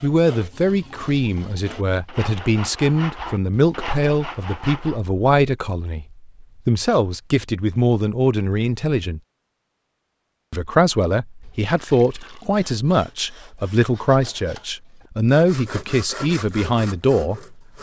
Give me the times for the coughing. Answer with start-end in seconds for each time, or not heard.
not heard.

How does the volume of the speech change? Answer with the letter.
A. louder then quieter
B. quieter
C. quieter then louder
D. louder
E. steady
E.